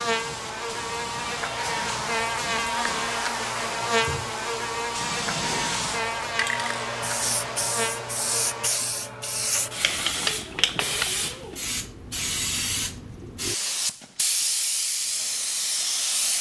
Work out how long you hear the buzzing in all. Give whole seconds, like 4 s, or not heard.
9 s.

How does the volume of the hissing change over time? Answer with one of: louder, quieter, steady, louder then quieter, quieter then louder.
louder.